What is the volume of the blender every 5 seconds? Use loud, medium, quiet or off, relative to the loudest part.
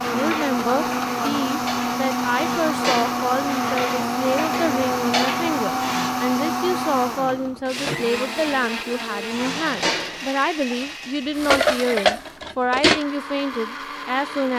loud, loud, medium.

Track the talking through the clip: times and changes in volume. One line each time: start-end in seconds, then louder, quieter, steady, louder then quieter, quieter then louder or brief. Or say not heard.
0.1-14.5 steady.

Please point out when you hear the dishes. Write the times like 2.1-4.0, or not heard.
0.0-6.2, 9.3-13.1.